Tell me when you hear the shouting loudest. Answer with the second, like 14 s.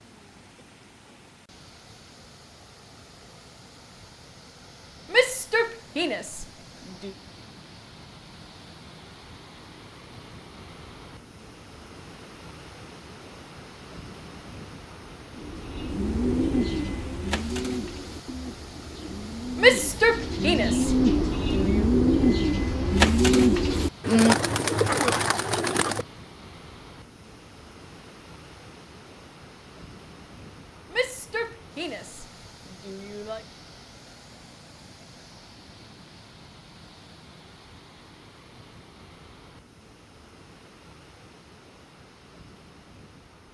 20 s.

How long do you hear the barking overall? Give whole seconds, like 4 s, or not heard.
not heard.